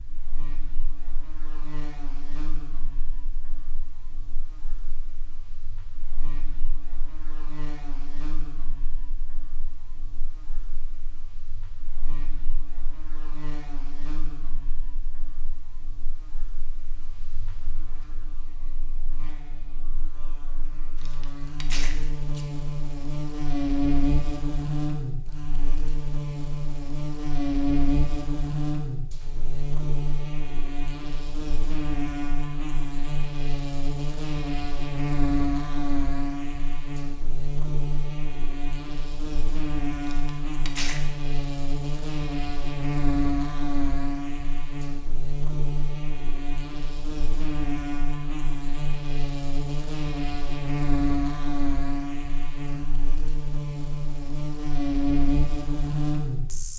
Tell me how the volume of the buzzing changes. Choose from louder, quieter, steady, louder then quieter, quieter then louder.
louder.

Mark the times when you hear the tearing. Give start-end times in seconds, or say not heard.
20.9-22.4, 40.0-41.0.